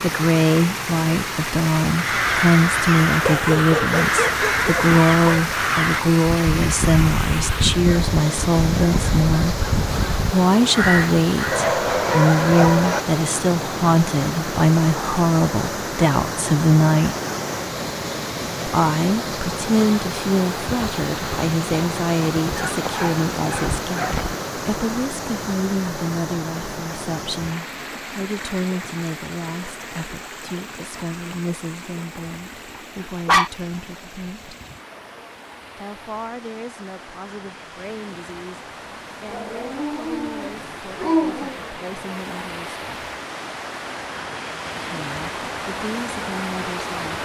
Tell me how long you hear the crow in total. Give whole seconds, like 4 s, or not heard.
10 s.